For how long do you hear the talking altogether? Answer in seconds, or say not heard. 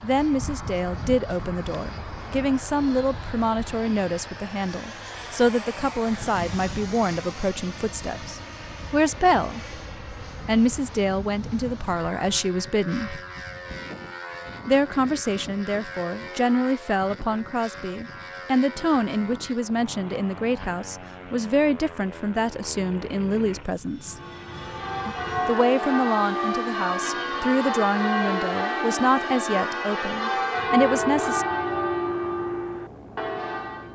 28 s.